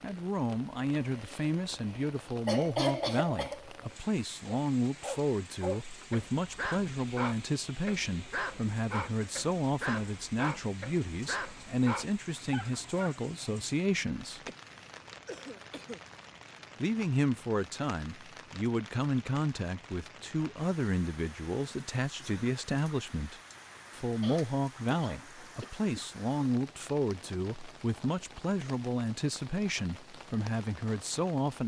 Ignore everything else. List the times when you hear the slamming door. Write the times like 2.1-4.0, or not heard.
not heard.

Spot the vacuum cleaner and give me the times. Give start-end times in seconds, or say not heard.
not heard.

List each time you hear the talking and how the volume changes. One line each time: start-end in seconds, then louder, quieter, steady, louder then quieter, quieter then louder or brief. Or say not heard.
0.0-14.4 steady
16.8-31.6 steady.